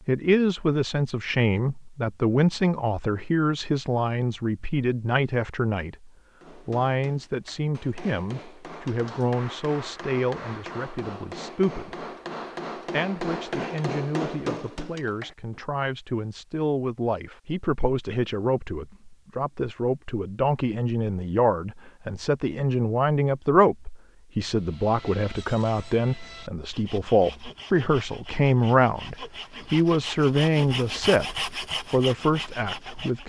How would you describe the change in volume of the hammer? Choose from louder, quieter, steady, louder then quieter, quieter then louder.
louder.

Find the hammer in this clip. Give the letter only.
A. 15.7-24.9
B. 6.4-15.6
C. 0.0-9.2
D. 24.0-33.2
B.